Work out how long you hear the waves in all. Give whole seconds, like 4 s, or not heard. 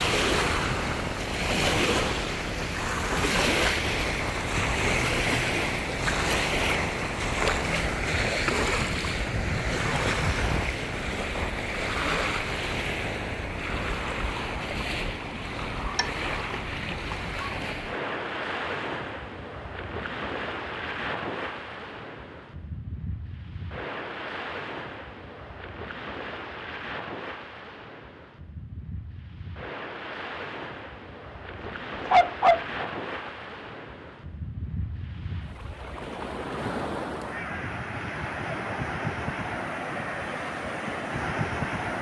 42 s.